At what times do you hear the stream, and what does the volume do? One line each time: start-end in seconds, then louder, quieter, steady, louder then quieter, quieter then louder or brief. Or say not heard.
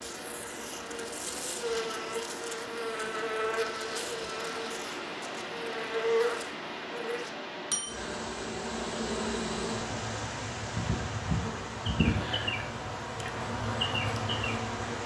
0.0-15.0 steady.